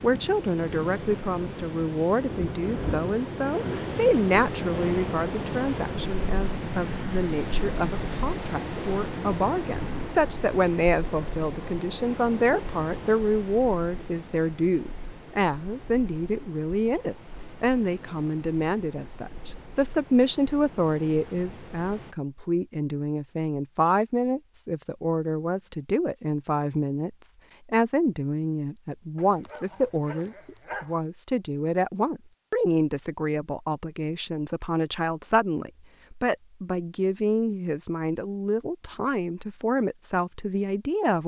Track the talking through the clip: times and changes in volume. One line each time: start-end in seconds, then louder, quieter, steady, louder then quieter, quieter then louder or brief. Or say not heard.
0.0-41.2 steady.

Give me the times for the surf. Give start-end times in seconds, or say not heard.
0.0-22.1.